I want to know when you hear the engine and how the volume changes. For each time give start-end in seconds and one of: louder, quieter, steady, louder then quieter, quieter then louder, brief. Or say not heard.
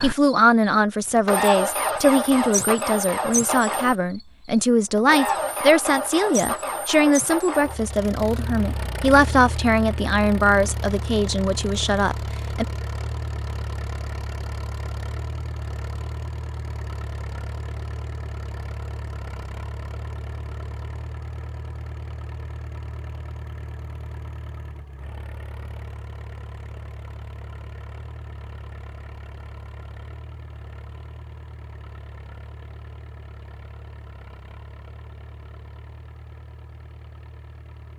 0.0-37.9 quieter.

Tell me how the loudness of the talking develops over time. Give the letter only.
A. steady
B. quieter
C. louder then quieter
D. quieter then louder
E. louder
A.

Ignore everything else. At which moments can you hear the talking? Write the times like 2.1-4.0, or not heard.
0.0-12.7.